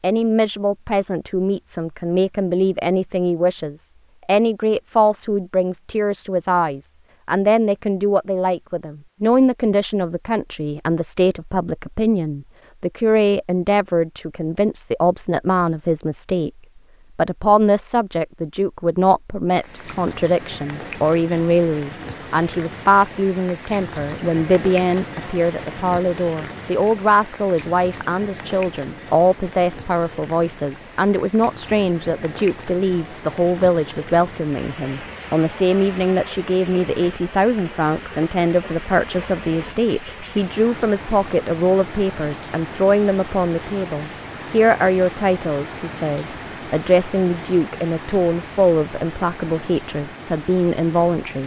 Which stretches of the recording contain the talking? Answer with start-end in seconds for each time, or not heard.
0.0-16.5, 17.1-51.4.